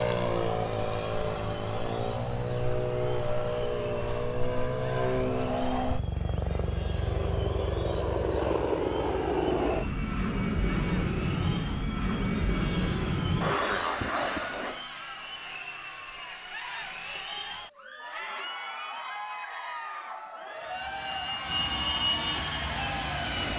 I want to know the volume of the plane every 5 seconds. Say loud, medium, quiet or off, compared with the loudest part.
loud, loud, loud, off, loud.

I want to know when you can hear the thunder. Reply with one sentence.
You can't hear the thunder here.